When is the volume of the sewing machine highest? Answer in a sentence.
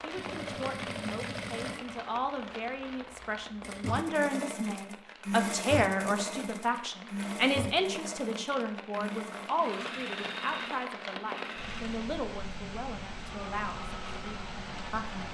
The loudest moment of the sewing machine is at 6 seconds.